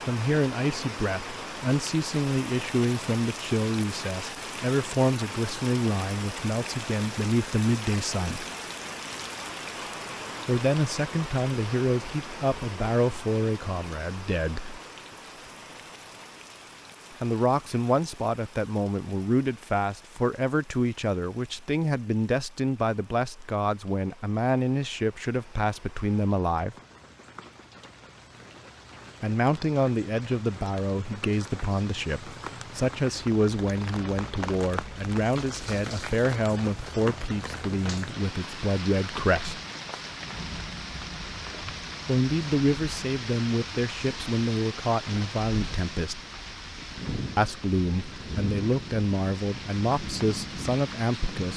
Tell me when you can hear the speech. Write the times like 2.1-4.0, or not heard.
0.1-8.4, 10.4-14.8, 17.2-26.8, 29.2-39.6, 42.0-46.2, 47.4-51.5.